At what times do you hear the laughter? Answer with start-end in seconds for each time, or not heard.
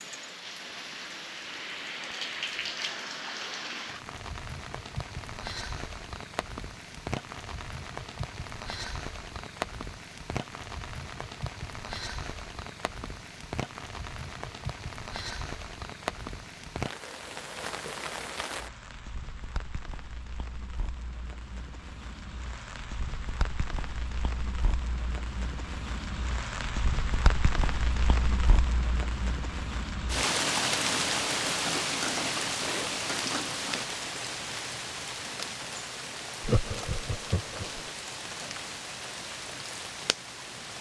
36.4-37.8.